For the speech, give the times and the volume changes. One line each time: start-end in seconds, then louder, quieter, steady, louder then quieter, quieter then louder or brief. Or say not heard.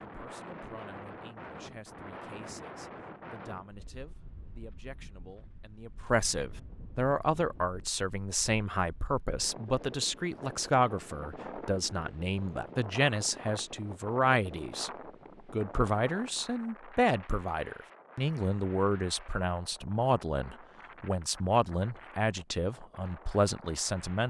0.1-14.9 louder
15.5-24.2 steady.